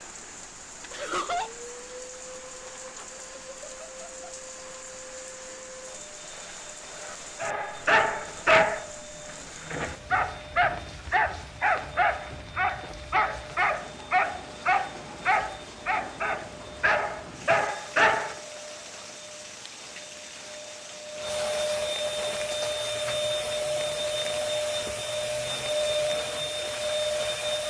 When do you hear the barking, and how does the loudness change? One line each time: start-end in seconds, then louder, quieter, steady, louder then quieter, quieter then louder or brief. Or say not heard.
7.4-8.9 brief
9.6-18.4 steady.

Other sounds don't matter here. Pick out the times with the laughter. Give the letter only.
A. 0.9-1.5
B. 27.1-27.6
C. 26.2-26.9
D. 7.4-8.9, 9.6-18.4
A.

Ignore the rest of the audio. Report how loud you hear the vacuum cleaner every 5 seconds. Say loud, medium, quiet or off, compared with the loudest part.
quiet, quiet, quiet, quiet, loud, loud.